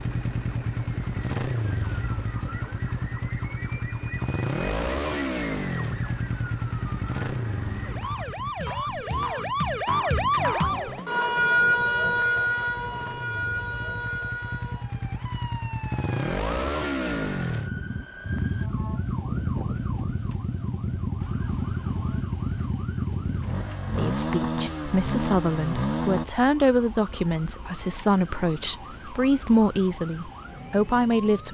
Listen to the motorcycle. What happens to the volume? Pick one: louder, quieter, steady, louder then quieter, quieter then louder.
quieter then louder.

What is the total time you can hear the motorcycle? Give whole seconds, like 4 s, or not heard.
26 s.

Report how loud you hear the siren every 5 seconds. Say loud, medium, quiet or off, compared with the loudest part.
quiet, medium, loud, quiet, quiet, quiet, quiet.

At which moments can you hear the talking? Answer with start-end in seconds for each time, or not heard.
23.9-31.5.